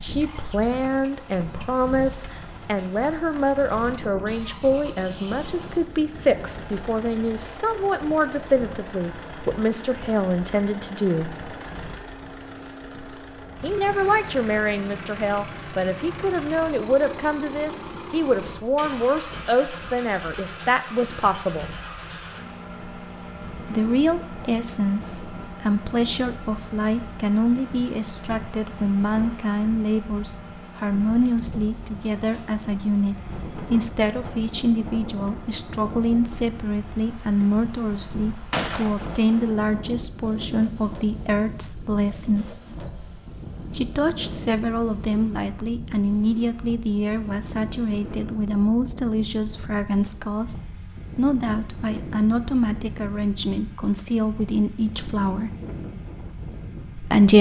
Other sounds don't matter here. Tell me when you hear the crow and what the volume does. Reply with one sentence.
You can't hear the crow here.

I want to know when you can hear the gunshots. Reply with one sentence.
The gunshots can be heard from 38.5 to 40.0 s.